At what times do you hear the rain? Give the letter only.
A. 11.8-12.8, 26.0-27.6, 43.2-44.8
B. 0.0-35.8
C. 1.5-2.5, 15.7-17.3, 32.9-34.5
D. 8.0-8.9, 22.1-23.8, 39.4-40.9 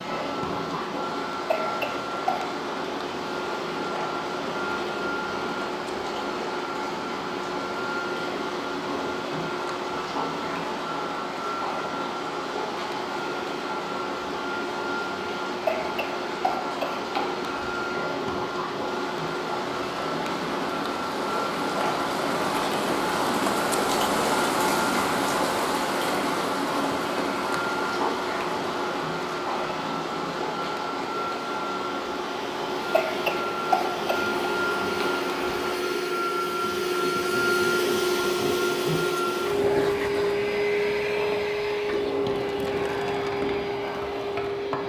B.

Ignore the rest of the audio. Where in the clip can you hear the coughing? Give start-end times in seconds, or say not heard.
1.5-2.5, 15.7-17.3, 32.9-34.5.